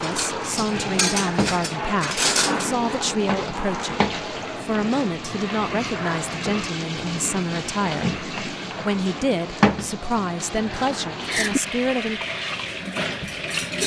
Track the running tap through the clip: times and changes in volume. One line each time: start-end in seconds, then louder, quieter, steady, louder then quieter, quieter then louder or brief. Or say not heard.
0.0-13.8 steady.